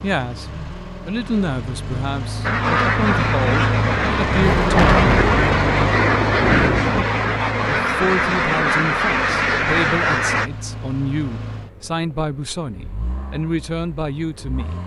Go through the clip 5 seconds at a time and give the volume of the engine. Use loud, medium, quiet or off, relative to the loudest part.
loud, loud, medium.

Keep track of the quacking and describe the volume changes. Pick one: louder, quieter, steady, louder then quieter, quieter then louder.
steady.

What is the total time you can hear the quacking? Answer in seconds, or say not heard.
8 s.